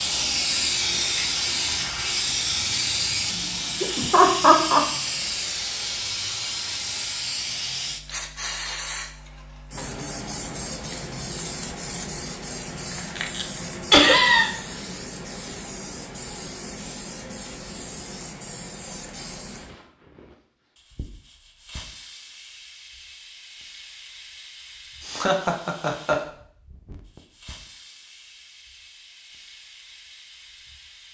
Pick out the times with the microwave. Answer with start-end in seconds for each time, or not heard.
not heard.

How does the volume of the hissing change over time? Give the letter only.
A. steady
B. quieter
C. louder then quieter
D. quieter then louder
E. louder
B.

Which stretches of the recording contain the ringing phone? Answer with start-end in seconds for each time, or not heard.
not heard.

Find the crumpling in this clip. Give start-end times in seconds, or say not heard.
12.9-13.8.